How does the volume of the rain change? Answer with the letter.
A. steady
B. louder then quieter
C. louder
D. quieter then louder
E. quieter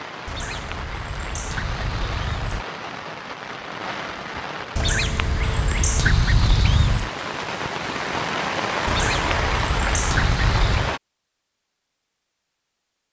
C.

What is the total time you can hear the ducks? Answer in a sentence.
You can hear the ducks for 7 seconds altogether.